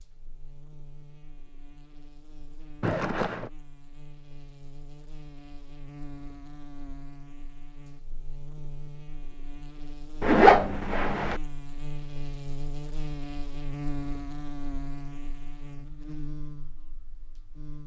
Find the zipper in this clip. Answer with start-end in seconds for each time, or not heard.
2.8-3.5, 10.2-11.4.